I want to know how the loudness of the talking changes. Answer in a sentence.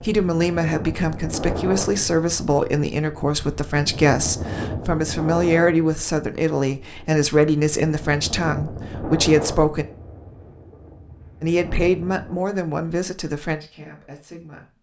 The loudness of the talking goes down.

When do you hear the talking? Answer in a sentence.
You can hear the talking from 0.0 to 9.8 s and from 11.4 to 14.7 s.